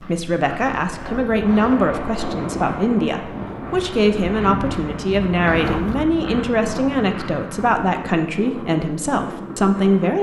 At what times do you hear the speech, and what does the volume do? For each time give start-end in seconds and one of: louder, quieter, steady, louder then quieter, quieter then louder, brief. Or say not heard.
0.0-10.1 steady.